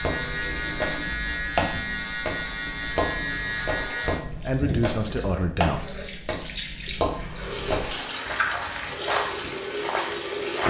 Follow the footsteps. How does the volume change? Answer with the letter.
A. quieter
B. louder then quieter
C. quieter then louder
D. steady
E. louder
D.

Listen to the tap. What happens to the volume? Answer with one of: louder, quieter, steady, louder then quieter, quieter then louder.
louder.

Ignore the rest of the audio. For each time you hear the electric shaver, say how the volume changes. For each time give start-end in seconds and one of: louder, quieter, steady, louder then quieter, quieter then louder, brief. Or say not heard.
0.0-4.2 steady.